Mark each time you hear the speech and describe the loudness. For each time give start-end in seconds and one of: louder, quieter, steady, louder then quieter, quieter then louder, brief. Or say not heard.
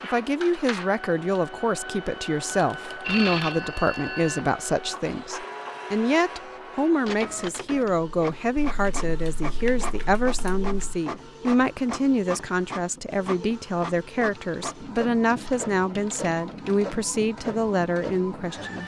0.0-18.8 steady.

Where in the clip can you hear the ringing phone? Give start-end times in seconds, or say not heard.
3.0-4.5.